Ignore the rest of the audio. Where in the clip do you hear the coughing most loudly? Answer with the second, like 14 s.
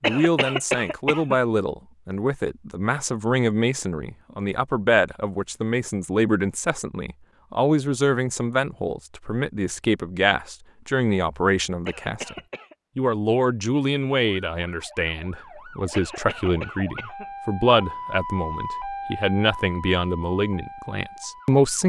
1 s.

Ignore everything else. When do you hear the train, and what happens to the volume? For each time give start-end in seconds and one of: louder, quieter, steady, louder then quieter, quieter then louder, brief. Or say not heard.
not heard.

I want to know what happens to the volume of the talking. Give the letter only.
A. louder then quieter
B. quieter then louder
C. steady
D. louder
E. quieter
C.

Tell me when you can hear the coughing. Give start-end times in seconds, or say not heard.
0.0-1.4, 11.8-12.8, 15.9-17.3.